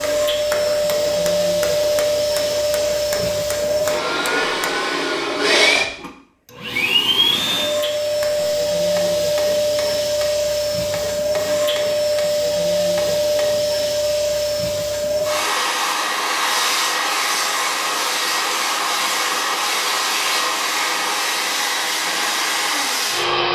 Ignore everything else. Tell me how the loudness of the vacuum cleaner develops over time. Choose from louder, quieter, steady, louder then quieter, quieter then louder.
steady.